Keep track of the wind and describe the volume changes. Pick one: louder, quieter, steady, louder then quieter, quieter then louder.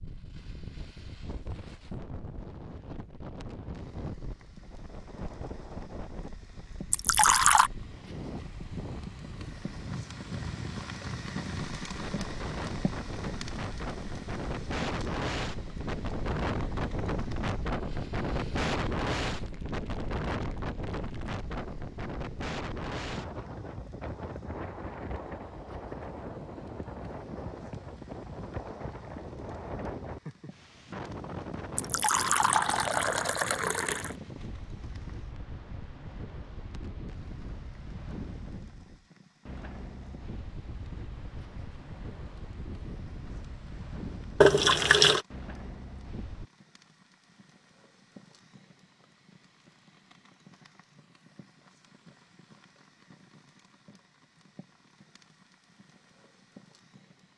louder then quieter.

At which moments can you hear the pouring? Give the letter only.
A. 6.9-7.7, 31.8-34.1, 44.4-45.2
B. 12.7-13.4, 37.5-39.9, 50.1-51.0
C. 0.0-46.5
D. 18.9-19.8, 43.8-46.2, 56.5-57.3
A.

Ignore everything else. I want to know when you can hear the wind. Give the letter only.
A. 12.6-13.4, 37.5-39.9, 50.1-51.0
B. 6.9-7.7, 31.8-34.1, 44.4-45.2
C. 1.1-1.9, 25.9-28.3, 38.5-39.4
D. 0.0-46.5
D.